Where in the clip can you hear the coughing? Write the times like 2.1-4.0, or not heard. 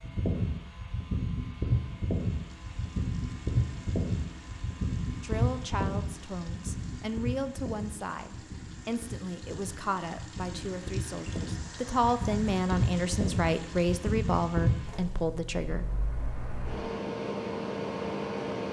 not heard.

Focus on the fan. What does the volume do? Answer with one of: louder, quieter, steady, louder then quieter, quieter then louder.
quieter then louder.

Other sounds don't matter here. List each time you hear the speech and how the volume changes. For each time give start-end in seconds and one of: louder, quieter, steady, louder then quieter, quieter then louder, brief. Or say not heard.
5.2-15.8 louder.